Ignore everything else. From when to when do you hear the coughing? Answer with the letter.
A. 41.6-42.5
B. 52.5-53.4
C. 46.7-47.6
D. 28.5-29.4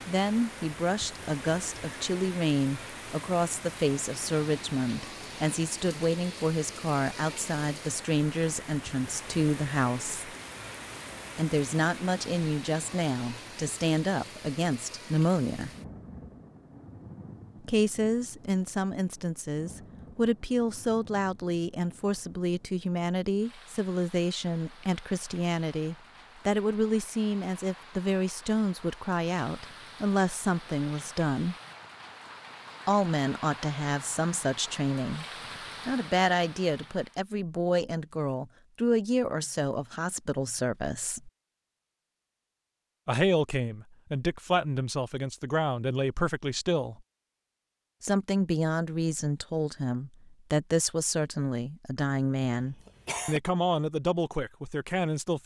B.